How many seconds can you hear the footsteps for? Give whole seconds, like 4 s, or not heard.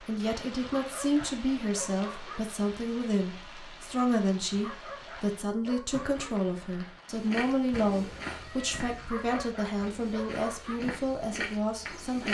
5 s.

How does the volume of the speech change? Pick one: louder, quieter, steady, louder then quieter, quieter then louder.
steady.